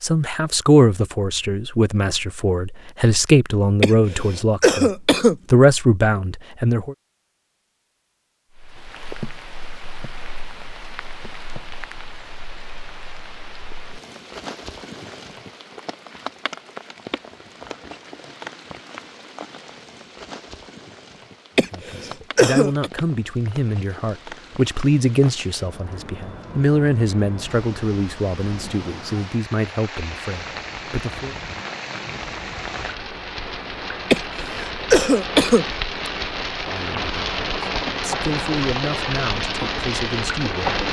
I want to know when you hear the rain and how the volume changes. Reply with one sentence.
The rain can be heard from 8.6 to 40.8 s, getting louder.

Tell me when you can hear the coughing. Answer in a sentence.
You can hear the coughing from 3.8 to 5.3 s, from 21.6 to 22.9 s and from 34.1 to 35.6 s.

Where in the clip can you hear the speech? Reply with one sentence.
The speech can be heard from 0.0 to 7.0 s, from 21.7 to 31.4 s and from 36.6 to 40.8 s.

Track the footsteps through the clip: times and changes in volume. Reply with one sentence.
The footsteps can't be heard in this clip.